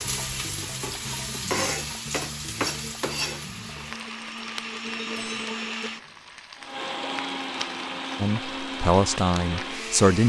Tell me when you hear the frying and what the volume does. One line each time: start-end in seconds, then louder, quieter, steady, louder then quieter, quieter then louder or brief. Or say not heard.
0.0-9.9 quieter.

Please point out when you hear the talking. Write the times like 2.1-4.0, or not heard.
8.2-10.2.